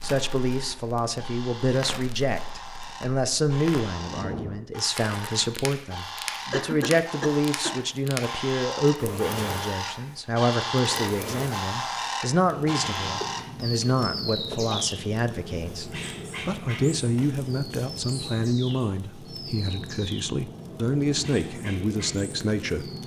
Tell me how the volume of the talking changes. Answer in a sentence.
The volume of the talking stays about the same.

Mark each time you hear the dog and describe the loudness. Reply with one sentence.
The dog can't be heard in this clip.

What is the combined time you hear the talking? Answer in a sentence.
You can hear the talking for 23 seconds altogether.